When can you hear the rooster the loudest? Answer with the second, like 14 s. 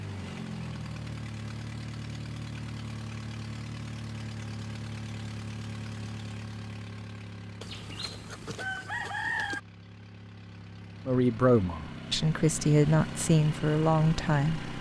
9 s.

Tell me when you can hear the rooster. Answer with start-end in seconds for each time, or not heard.
7.6-9.6.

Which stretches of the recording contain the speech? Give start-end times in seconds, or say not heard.
11.1-14.7.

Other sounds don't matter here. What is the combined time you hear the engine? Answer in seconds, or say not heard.
15 s.